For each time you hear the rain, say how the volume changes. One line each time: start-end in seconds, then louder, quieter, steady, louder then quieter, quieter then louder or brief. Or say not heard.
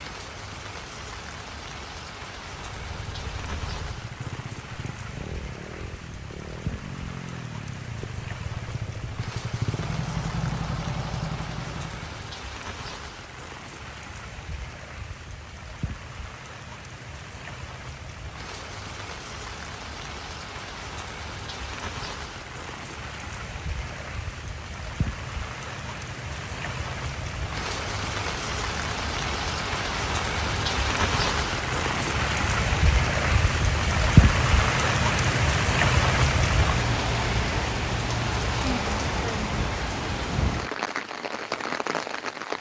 0.0-42.5 louder.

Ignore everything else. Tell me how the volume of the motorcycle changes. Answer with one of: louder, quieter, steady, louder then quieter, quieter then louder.
louder.